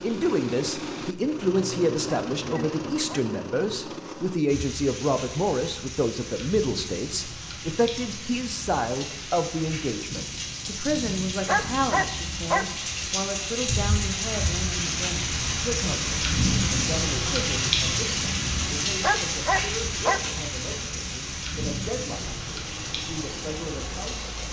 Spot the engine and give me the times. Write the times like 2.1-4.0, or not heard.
0.0-4.5, 22.1-24.4.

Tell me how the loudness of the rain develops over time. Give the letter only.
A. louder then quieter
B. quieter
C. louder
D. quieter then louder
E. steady
A.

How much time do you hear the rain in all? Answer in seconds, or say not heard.
20 s.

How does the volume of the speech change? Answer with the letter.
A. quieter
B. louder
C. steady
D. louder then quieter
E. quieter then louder
A.